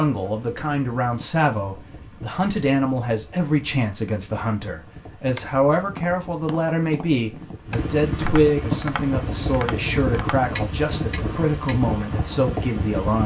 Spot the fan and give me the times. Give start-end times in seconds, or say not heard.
0.0-13.2.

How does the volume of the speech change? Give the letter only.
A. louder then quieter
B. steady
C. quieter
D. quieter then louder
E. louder
B.